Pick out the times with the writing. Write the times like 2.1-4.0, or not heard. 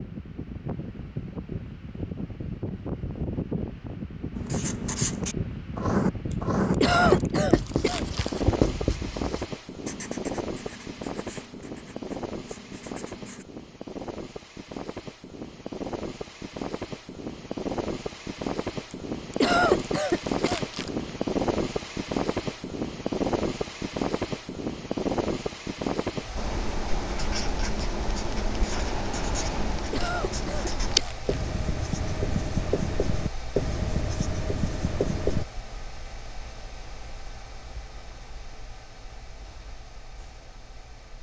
4.3-13.4, 26.4-35.5.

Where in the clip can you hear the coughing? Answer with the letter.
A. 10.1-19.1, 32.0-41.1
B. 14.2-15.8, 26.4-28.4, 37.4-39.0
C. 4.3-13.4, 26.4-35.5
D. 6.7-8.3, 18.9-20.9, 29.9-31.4
D.